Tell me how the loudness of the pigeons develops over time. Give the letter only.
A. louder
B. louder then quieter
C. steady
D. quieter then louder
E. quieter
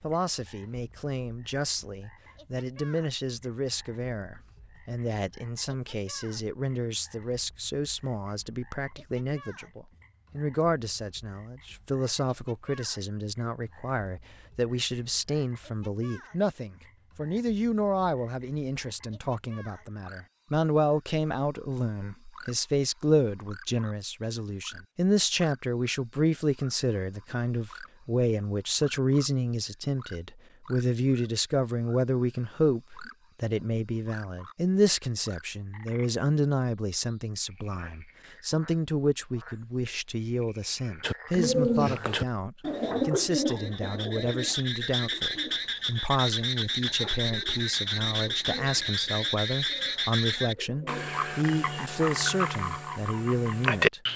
E.